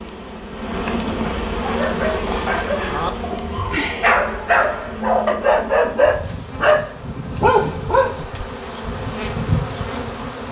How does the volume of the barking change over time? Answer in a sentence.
The volume of the barking goes up.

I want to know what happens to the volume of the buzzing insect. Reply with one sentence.
The loudness of the buzzing insect goes down, then up.